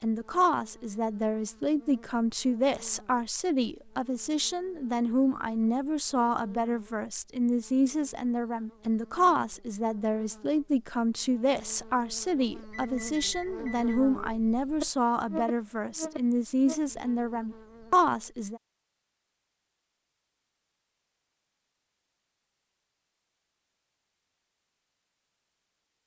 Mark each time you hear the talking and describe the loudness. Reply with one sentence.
You can hear the talking from 0.0 to 18.6 s, at a steady volume.